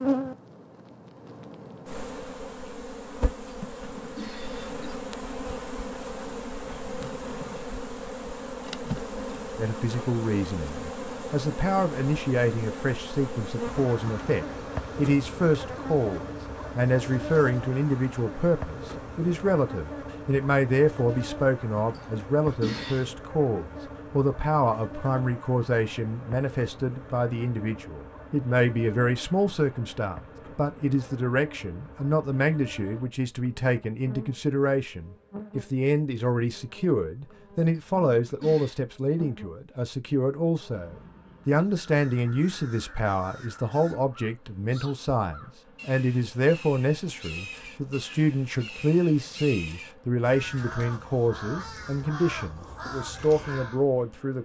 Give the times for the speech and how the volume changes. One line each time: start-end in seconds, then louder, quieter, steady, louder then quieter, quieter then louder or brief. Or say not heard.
9.6-54.3 steady.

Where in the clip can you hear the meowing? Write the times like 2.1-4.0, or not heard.
not heard.